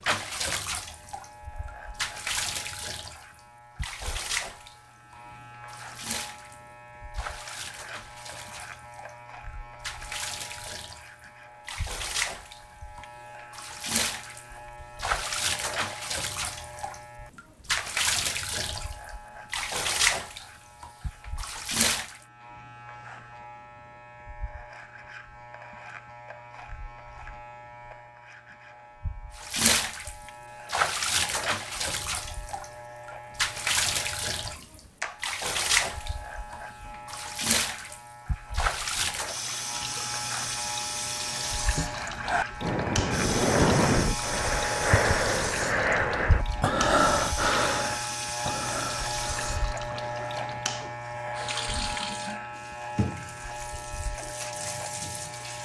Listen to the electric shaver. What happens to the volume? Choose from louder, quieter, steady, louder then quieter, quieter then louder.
louder.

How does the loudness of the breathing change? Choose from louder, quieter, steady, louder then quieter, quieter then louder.
quieter.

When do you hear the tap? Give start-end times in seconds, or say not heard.
0.0-22.2, 29.4-55.6.